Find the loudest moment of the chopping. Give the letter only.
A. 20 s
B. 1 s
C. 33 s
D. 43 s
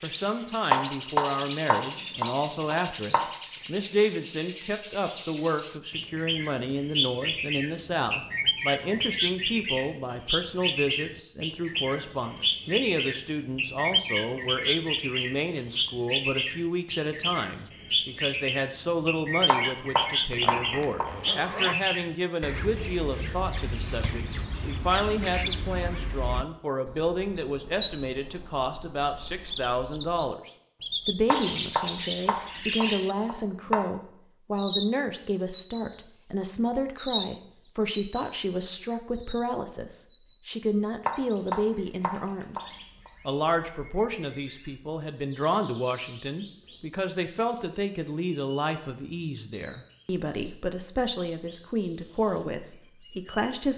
B.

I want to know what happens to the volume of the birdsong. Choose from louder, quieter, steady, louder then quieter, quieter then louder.
quieter.